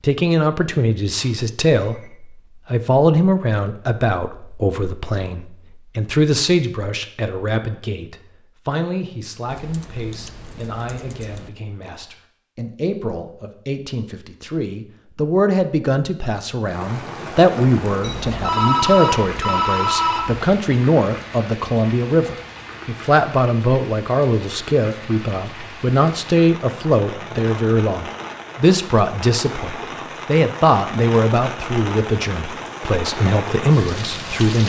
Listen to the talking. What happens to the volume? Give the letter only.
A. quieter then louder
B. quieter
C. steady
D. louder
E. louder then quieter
A.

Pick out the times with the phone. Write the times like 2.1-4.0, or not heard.
1.1-2.1, 18.0-20.4.